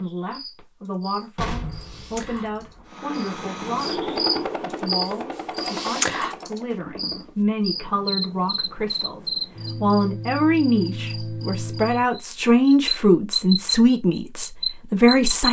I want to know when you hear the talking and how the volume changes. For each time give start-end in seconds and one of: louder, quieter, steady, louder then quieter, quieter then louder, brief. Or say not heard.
0.0-15.4 louder.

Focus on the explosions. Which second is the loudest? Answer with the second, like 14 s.
2 s.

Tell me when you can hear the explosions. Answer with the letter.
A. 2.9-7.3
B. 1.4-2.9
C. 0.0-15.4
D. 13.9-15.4
B.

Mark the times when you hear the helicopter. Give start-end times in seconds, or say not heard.
2.9-7.3.